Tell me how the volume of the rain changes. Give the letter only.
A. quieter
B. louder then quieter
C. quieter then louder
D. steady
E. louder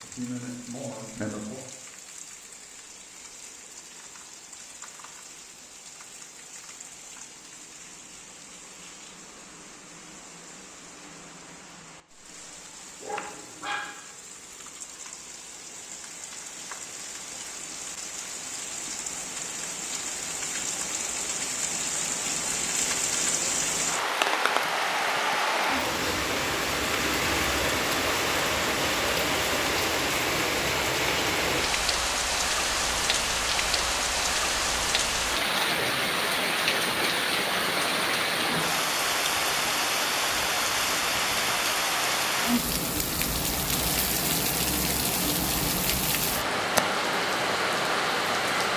E.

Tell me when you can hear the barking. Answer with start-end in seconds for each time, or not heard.
13.0-13.9.